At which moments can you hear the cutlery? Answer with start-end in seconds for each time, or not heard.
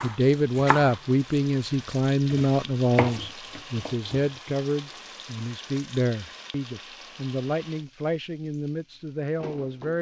not heard.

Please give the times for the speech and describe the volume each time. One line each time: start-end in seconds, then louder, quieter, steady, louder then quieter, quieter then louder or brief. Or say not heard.
0.0-9.9 quieter.